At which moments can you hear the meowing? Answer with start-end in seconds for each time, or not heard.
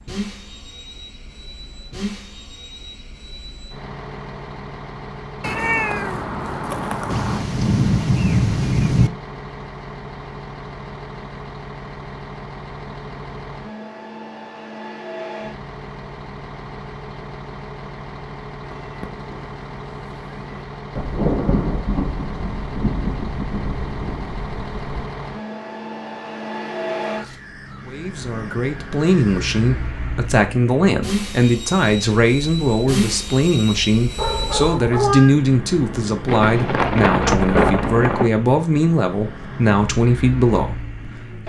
5.4-7.5, 18.6-20.6, 34.1-35.4.